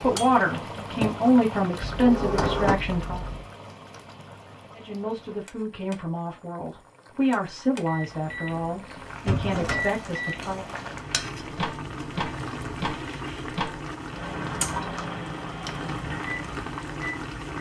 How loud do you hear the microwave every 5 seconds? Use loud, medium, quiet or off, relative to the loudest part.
off, loud, loud, loud.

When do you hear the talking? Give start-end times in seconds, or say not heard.
0.0-3.2, 4.8-10.7.